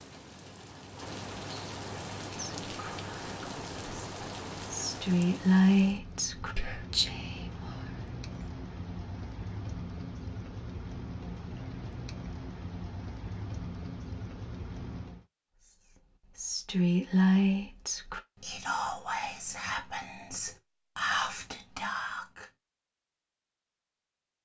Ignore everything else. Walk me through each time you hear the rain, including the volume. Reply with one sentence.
You can hear the rain from 0.0 to 15.2 s, at a steady volume.